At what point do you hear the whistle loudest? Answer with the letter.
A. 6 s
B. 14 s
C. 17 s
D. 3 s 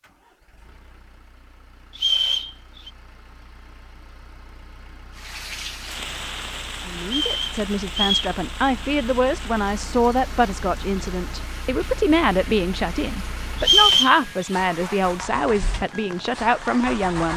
B.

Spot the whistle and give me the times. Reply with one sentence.
The whistle can be heard from 1.9 to 2.9 s, from 7.0 to 8.3 s and from 13.6 to 14.2 s.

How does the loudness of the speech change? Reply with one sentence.
The loudness of the speech stays about the same.